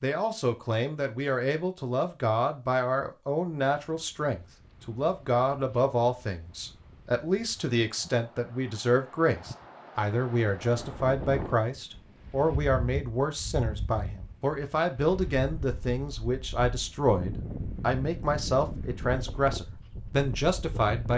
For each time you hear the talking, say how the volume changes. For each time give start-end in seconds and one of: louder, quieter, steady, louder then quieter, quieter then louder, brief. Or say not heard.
0.0-21.1 steady.